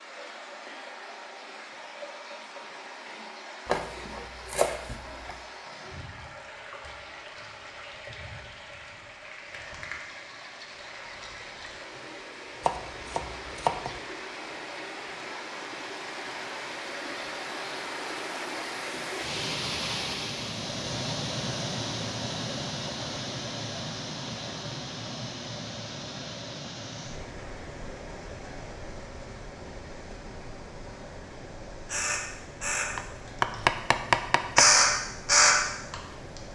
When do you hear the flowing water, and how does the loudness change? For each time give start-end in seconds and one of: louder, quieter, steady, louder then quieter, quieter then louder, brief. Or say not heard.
0.0-36.5 louder then quieter.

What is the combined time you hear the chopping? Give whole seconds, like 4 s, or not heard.
5 s.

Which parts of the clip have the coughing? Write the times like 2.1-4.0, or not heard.
not heard.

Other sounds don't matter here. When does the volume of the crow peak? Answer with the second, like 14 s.
35 s.